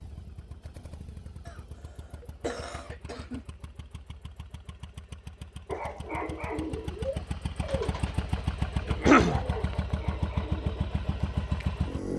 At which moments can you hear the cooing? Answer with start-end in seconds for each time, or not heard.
5.7-10.9.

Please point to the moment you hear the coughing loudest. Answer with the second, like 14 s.
9 s.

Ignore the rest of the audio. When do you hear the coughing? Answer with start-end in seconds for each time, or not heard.
1.4-3.5, 8.8-9.4.